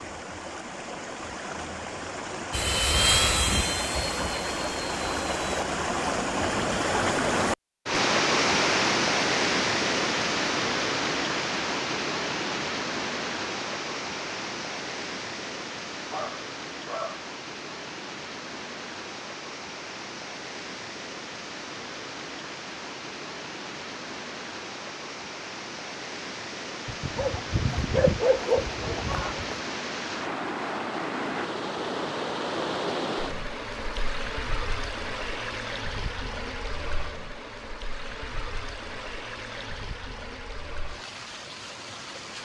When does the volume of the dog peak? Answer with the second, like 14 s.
28 s.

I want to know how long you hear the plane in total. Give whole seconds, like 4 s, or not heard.
3 s.